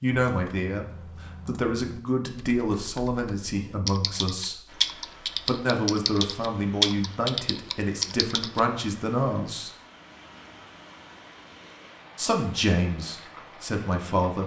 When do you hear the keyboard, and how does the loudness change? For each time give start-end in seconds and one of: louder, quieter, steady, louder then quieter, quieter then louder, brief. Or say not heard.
0.2-8.7 quieter then louder.